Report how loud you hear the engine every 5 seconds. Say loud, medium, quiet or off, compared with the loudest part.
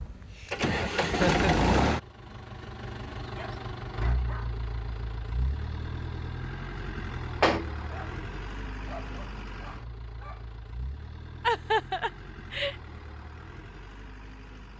loud, medium, quiet.